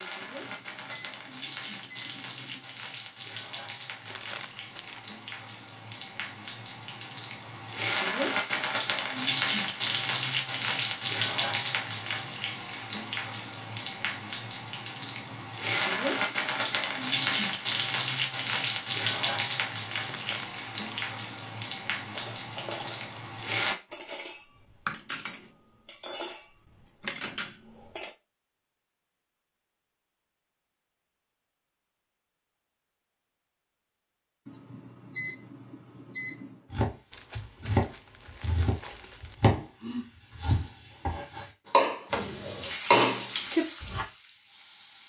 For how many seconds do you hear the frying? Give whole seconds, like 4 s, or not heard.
27 s.